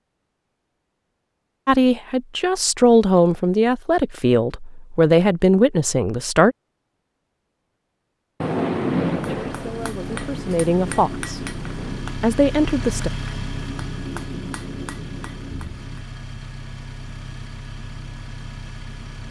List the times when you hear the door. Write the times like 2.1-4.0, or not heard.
not heard.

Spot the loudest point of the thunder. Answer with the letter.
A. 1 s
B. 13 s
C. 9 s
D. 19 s
C.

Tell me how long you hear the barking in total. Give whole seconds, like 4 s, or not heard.
not heard.